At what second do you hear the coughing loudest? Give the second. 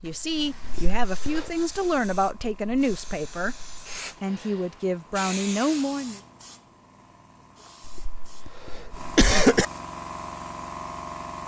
9 s.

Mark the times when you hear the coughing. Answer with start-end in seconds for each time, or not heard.
0.6-1.5, 7.8-9.7.